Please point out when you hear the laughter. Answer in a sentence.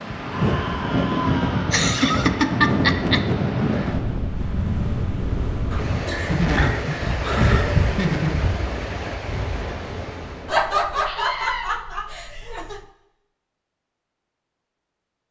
The laughter can be heard from 1.7 to 3.2 s, from 6.0 to 8.4 s and from 10.4 to 12.8 s.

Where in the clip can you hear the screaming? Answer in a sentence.
You can hear the screaming from 0.3 to 1.8 s and from 11.1 to 11.7 s.